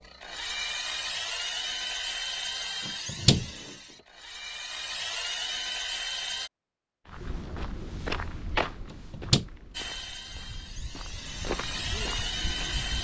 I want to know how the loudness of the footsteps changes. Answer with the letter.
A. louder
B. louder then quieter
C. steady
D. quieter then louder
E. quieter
D.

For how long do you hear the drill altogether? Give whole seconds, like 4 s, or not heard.
10 s.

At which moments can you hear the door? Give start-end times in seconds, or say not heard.
2.9-3.5, 8.9-9.4.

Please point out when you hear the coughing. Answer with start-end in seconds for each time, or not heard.
not heard.